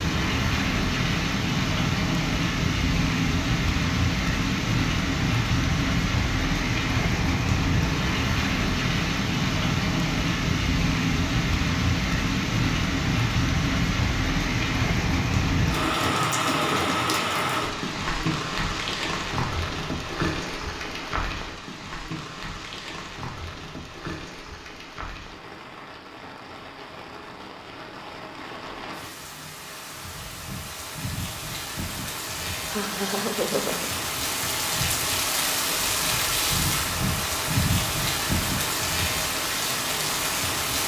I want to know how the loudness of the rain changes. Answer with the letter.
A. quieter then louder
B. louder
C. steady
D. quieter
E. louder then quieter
A.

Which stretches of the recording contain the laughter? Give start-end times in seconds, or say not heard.
32.6-34.0.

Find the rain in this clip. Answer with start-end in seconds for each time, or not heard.
0.0-40.8.